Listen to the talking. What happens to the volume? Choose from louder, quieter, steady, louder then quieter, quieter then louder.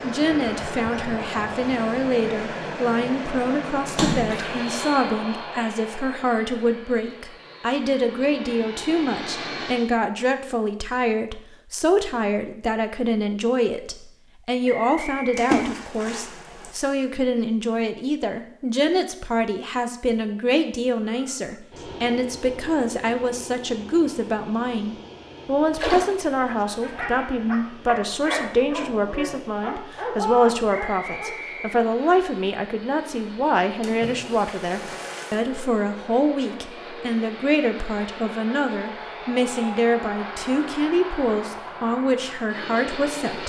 steady.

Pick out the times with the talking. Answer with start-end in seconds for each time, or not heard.
0.0-43.4.